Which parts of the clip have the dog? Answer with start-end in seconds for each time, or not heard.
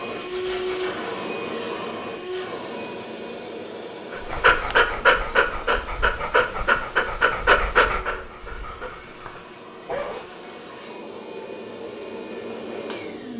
4.1-10.2.